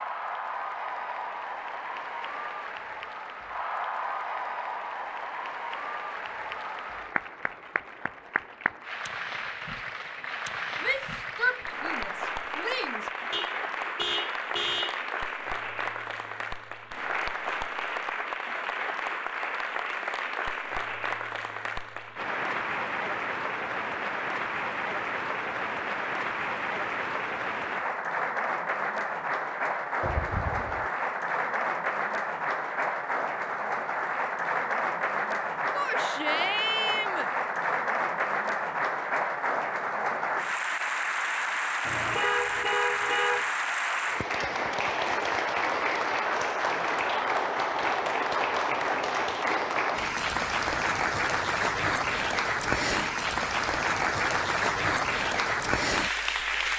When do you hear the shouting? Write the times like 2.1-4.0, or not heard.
10.8-13.1, 35.8-37.3.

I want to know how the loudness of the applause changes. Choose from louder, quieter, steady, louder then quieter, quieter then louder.
louder.